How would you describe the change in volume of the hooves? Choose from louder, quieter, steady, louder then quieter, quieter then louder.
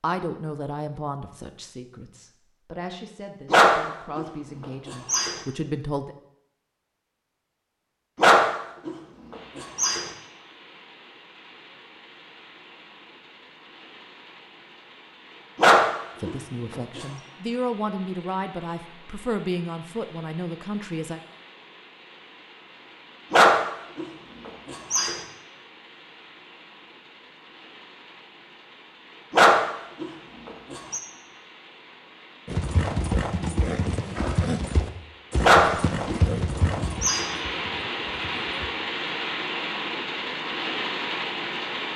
quieter.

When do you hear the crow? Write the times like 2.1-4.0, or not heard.
not heard.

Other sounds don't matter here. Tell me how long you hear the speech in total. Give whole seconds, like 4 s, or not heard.
11 s.